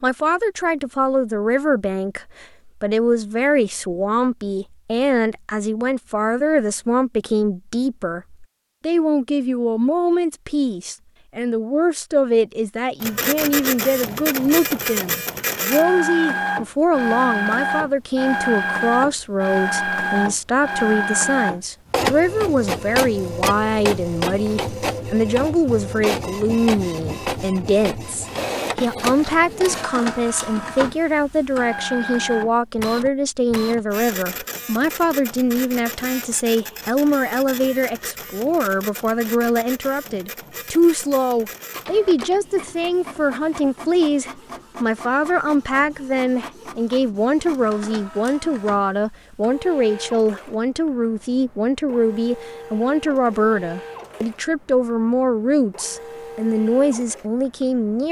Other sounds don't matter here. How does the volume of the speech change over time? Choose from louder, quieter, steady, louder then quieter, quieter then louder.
steady.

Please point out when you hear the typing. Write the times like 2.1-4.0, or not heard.
not heard.